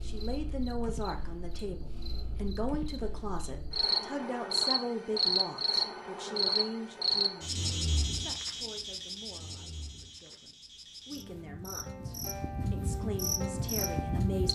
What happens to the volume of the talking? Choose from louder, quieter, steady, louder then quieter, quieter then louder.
quieter then louder.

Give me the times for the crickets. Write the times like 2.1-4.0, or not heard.
0.0-14.4.